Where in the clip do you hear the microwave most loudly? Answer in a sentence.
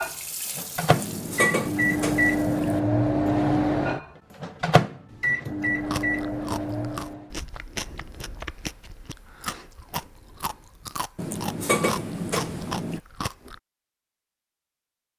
The loudest moment of the microwave is at 3 seconds.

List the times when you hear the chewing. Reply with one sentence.
The chewing can be heard from 5.6 to 13.6 s.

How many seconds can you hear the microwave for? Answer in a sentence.
The microwave can be heard for 7 seconds in total.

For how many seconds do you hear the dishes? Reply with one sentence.
You can hear the dishes for 4 seconds altogether.